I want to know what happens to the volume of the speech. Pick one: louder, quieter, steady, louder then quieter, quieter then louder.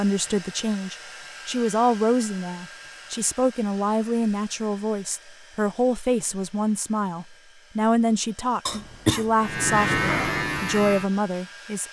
steady.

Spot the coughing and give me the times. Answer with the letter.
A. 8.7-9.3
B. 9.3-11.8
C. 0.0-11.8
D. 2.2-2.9
A.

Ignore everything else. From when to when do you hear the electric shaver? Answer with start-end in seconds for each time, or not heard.
9.3-11.8.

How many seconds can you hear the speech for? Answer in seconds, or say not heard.
12 s.